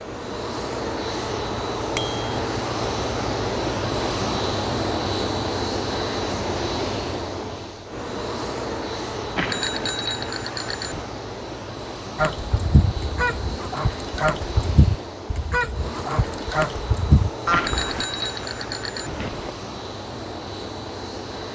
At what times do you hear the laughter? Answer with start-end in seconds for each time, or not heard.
not heard.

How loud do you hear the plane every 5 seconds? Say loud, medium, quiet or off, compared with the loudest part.
loud, loud, medium, medium, medium.